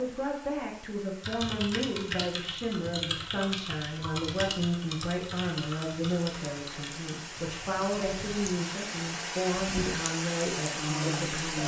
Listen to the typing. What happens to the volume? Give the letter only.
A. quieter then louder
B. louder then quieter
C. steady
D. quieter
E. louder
D.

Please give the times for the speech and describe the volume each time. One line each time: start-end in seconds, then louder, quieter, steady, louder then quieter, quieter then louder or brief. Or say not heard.
0.0-11.6 steady.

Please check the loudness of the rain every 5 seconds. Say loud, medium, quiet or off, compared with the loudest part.
quiet, medium, loud.